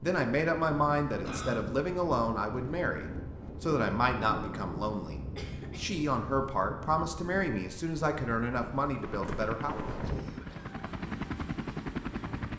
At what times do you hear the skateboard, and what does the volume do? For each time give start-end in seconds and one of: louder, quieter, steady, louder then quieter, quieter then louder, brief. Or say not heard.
not heard.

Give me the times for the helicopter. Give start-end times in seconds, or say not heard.
9.0-12.5.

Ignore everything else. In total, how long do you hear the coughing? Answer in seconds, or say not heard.
2 s.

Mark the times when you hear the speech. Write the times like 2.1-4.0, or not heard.
0.0-9.8.